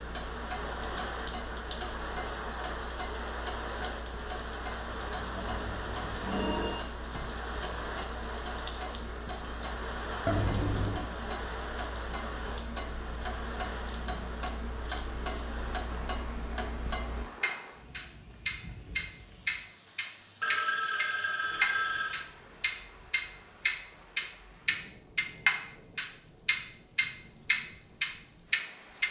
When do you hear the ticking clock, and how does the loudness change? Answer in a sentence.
You can hear the ticking clock from 0.0 to 29.0 s, getting louder.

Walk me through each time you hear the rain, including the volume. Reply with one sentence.
The rain can be heard from 0.0 to 29.0 s, getting quieter.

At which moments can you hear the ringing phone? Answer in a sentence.
You can hear the ringing phone from 5.3 to 6.8 s, from 10.2 to 11.1 s and from 20.4 to 22.2 s.